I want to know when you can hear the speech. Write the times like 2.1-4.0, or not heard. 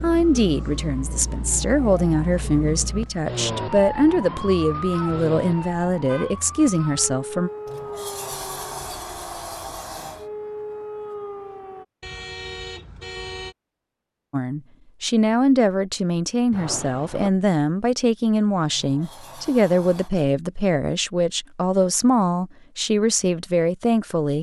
0.0-7.5, 14.3-24.3.